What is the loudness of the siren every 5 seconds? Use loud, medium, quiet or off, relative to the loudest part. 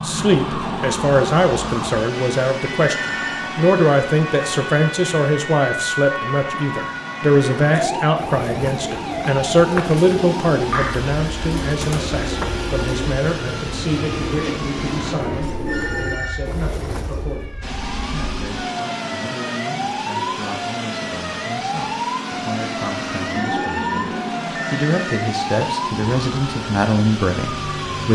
loud, loud, loud, medium, loud, loud.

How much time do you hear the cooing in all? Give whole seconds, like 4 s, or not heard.
10 s.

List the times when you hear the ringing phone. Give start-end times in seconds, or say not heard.
2.9-3.5, 15.7-16.4, 23.3-25.2.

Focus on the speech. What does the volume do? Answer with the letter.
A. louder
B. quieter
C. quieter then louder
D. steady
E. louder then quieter
C.